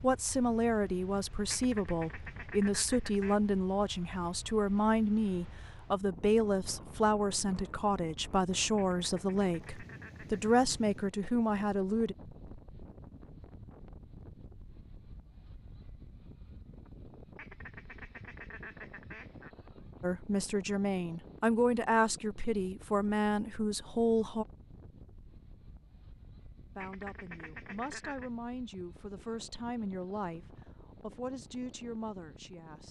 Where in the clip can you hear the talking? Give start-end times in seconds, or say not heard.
0.0-12.2, 20.0-24.4, 26.8-32.8.